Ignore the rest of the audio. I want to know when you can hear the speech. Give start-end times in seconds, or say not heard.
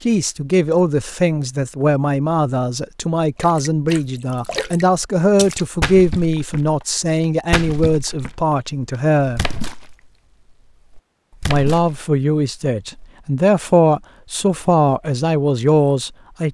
0.0-9.6, 11.4-16.4.